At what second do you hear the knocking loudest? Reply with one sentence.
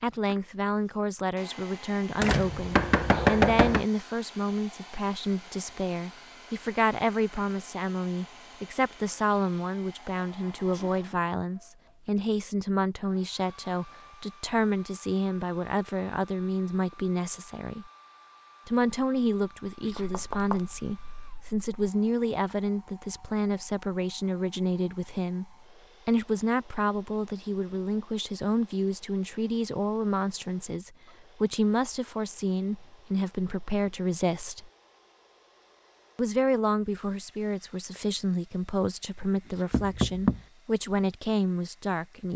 The loudest moment of the knocking is at 3 seconds.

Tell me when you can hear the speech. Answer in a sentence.
You can hear the speech from 0.0 to 17.9 s, from 18.6 to 34.7 s and from 36.1 to 42.3 s.